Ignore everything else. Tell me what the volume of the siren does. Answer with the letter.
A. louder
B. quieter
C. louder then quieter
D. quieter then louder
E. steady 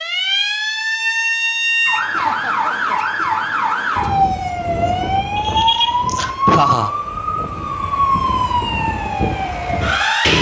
E.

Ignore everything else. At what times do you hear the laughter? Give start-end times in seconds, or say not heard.
2.1-3.1, 5.3-6.9.